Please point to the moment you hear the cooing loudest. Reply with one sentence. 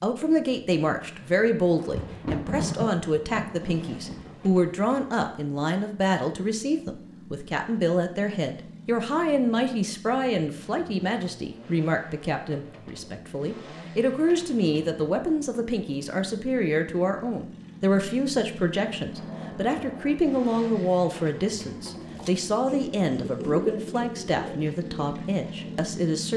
The volume of the cooing peaks at 24 seconds.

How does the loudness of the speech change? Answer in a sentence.
The loudness of the speech stays about the same.